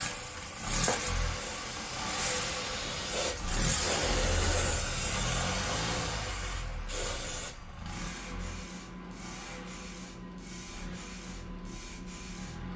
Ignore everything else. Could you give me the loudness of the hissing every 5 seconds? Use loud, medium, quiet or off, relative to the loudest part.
loud, loud, medium.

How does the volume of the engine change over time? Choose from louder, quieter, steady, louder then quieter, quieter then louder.
quieter.